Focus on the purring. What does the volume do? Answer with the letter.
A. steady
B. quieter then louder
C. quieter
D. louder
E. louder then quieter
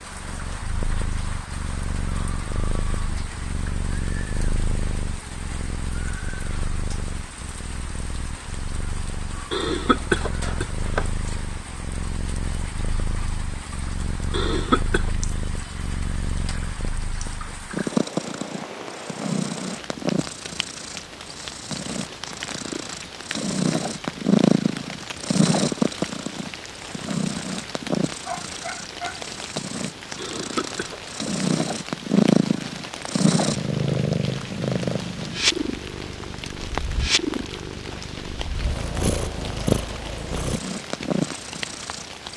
D.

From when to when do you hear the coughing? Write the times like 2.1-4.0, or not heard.
9.5-11.1, 14.3-15.1, 30.1-31.1.